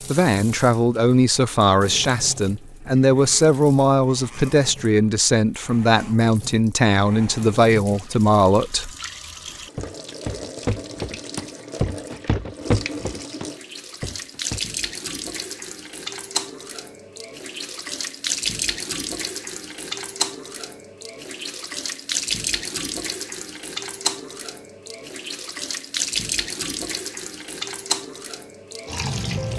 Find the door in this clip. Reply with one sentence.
You can't hear the door here.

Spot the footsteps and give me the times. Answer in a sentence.
You can hear the footsteps from 9.4 to 14.6 s.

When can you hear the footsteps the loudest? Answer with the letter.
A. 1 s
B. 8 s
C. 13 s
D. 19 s
C.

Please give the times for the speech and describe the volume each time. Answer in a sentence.
The speech can be heard from 0.1 to 8.9 s, at a steady volume.